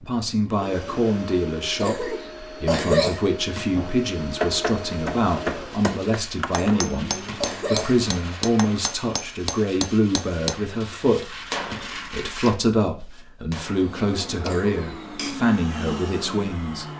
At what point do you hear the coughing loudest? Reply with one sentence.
The volume of the coughing peaks at 3 seconds.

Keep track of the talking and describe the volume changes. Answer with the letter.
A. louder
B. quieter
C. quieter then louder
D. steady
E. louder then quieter
D.